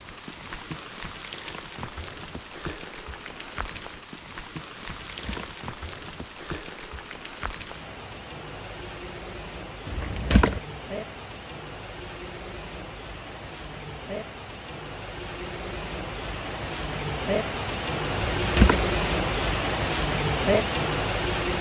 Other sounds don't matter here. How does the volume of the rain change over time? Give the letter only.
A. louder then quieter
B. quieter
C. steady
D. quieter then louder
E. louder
E.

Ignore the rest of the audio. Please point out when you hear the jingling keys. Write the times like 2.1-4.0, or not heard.
5.0-5.5, 9.8-10.6, 18.1-18.9.